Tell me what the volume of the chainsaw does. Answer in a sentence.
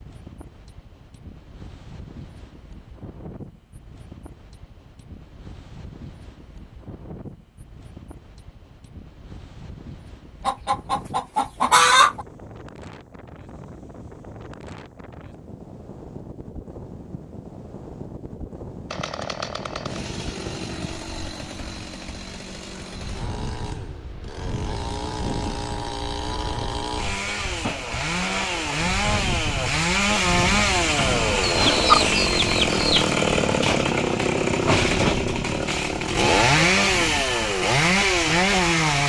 The loudness of the chainsaw goes up.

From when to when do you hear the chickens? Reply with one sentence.
The chickens can be heard from 10.4 to 12.2 s and from 31.4 to 33.1 s.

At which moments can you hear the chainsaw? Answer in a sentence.
You can hear the chainsaw from 18.9 to 39.0 s.